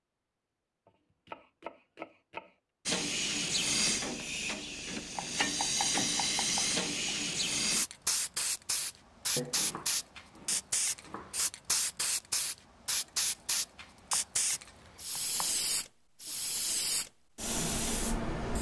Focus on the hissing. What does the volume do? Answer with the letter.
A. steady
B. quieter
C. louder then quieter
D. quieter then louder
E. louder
A.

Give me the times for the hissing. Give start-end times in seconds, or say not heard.
2.9-18.5.